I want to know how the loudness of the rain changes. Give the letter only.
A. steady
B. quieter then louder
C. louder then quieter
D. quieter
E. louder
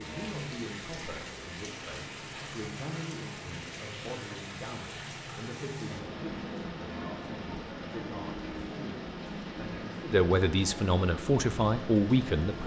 A.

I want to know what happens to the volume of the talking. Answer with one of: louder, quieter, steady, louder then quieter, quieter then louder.
louder.